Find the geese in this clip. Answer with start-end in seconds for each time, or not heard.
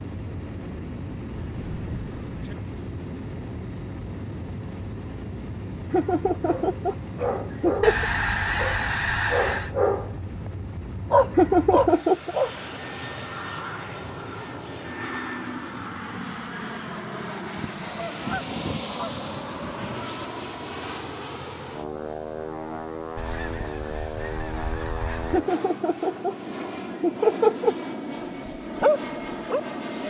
1.4-2.5, 7.8-9.7, 17.8-20.1, 23.1-25.4.